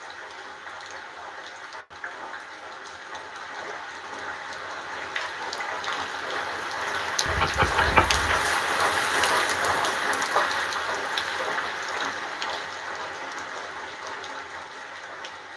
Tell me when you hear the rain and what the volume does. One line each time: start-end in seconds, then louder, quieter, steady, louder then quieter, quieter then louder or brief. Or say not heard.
0.0-15.5 louder then quieter.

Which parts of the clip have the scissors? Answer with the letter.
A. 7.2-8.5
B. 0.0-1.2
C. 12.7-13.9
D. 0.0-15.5
A.